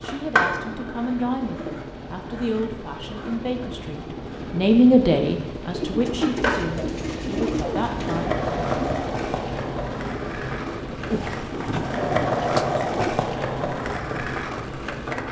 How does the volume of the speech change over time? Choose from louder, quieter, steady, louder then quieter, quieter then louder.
louder then quieter.